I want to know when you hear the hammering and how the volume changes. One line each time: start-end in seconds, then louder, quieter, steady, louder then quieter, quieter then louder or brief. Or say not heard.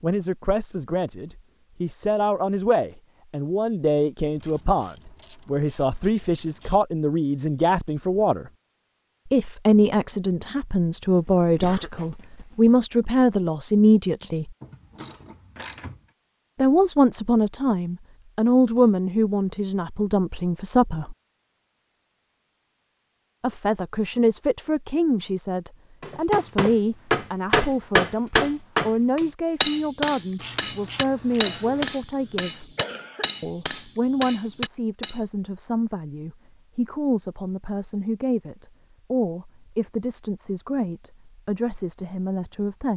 26.0-35.2 quieter.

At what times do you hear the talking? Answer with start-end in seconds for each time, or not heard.
0.0-8.5, 9.2-14.5, 16.6-21.1, 23.4-32.7, 33.4-42.9.